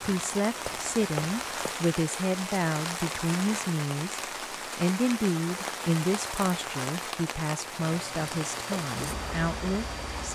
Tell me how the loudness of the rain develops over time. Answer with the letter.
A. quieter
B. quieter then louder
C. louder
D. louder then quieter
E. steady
E.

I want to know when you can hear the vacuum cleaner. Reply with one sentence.
You can hear the vacuum cleaner from 7.8 to 10.3 s.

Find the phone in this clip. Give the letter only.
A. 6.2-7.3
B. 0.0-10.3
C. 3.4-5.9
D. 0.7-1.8
D.